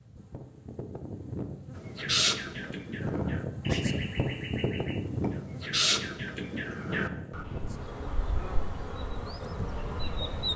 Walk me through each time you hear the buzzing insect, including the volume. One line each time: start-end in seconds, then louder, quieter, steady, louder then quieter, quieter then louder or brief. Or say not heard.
0.0-10.5 louder then quieter.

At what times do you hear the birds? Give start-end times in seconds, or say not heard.
1.8-10.5.